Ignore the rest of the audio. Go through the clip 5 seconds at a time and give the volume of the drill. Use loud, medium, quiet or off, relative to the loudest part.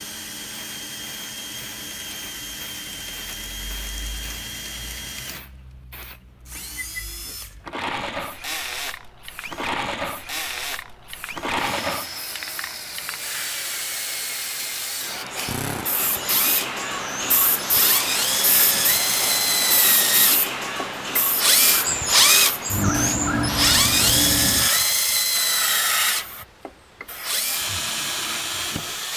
quiet, quiet, quiet, medium, loud, medium.